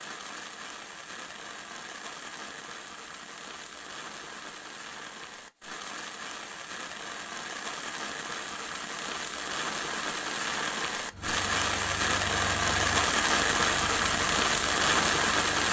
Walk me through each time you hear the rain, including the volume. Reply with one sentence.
You can hear the rain from 0.0 to 15.6 s, getting louder.